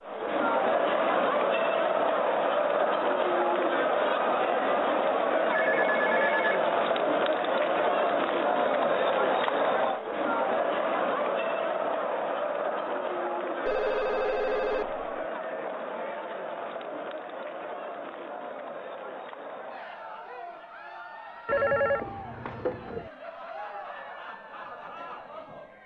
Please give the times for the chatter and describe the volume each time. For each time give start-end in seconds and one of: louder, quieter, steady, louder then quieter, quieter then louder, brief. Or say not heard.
0.0-25.8 quieter.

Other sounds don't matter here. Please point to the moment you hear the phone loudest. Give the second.
22 s.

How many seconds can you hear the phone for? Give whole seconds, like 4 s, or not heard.
4 s.